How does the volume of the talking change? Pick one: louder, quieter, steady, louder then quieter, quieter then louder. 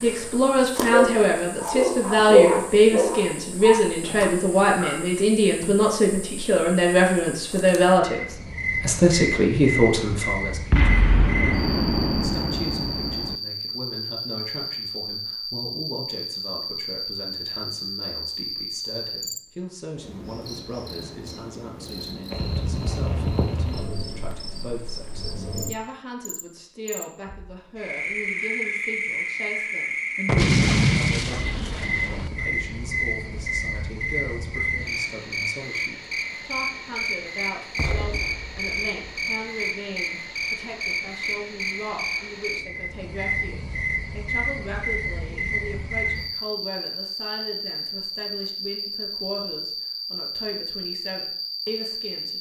quieter.